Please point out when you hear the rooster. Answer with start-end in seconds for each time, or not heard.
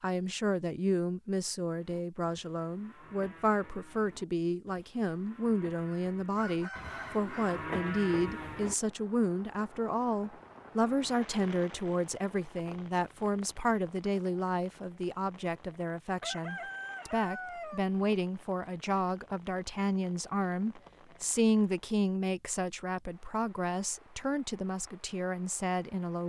6.3-7.6, 16.2-17.8.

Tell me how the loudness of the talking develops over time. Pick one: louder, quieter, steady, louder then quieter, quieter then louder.
steady.